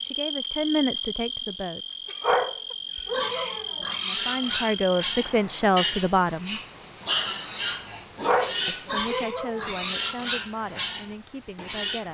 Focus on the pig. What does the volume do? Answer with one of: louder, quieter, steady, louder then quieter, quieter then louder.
steady.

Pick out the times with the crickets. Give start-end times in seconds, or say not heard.
0.0-12.0.